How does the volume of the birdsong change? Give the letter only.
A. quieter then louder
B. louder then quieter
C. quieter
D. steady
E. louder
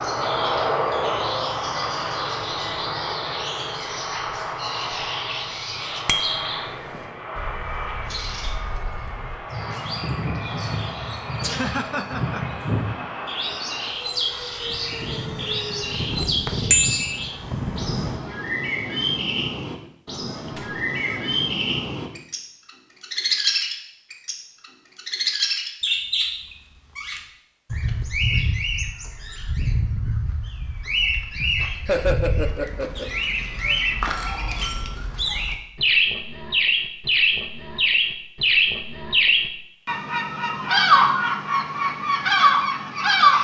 E.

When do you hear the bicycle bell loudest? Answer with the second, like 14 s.
17 s.